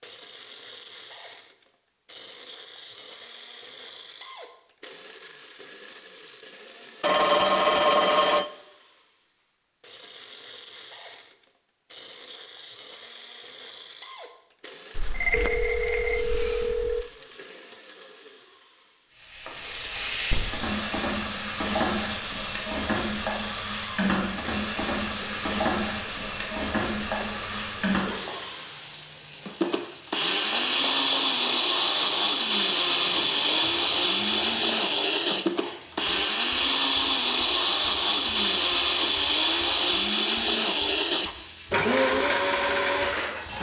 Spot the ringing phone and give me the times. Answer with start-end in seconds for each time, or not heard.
7.0-8.5, 14.9-17.1, 32.9-34.8.